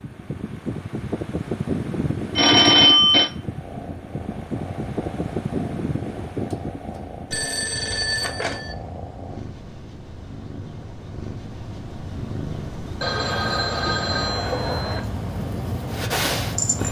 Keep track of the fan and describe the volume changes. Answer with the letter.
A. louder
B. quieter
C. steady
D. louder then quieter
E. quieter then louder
E.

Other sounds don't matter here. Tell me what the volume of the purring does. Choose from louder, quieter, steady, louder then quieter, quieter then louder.
louder.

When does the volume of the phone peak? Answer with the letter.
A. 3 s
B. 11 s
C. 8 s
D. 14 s
A.